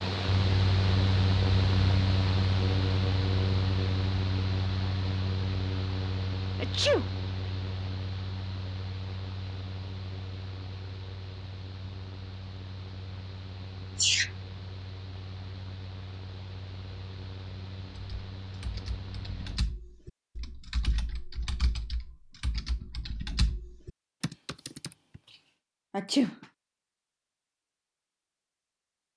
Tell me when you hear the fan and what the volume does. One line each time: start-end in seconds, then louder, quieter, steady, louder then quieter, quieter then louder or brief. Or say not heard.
0.0-19.6 quieter.